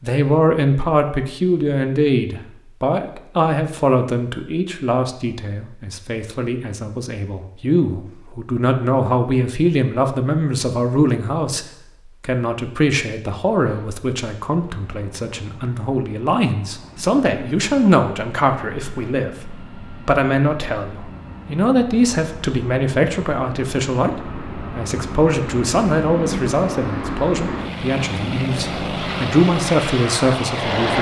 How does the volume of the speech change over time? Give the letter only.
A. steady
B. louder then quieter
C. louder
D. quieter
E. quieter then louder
A.